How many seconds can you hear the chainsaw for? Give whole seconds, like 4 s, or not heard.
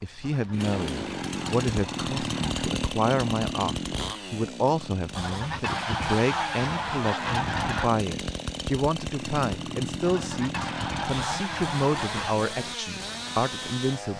14 s.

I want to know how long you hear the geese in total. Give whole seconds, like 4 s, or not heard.
8 s.